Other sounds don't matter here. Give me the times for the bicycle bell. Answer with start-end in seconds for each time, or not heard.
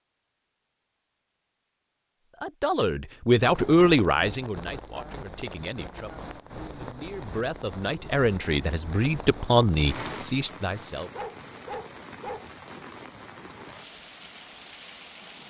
not heard.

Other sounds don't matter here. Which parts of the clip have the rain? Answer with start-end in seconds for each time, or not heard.
3.4-15.4.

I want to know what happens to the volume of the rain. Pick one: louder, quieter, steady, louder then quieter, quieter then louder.
quieter.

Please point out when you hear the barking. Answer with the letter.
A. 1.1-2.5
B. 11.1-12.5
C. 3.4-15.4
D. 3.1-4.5
B.